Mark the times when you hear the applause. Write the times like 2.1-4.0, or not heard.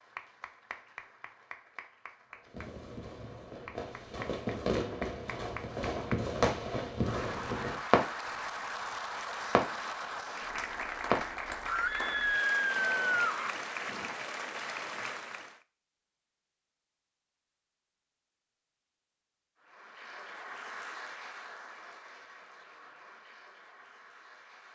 0.0-15.6, 19.6-24.7.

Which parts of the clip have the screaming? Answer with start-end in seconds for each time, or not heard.
11.7-13.5.